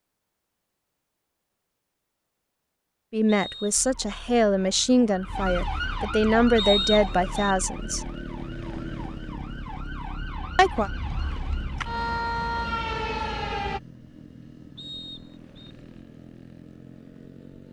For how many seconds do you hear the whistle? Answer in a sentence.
The whistle can be heard for 3 seconds in total.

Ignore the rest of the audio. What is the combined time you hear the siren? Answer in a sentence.
The siren can be heard for 10 seconds in total.